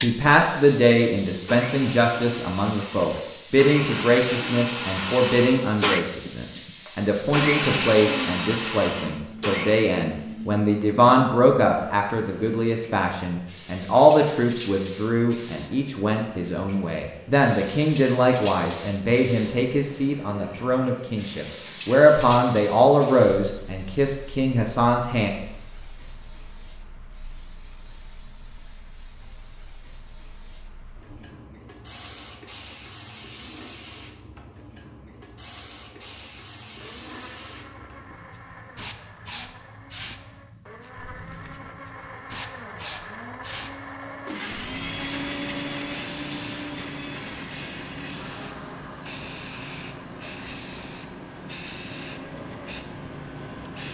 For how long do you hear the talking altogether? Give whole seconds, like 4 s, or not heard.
25 s.